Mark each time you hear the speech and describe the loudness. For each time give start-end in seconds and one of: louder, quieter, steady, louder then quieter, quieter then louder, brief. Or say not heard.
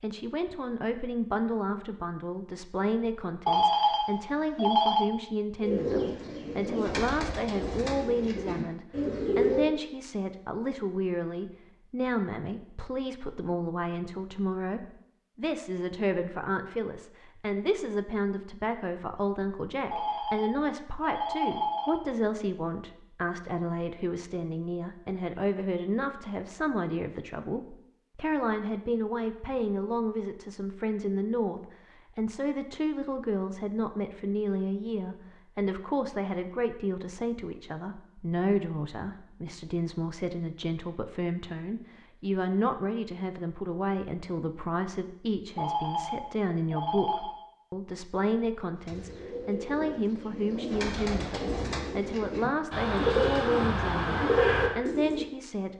0.0-55.7 steady.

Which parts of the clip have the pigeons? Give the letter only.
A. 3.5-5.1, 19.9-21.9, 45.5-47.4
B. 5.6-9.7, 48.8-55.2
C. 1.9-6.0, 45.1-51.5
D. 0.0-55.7
B.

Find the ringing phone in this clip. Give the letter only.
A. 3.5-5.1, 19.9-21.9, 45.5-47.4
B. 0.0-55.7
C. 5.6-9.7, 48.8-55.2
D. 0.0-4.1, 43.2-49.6
A.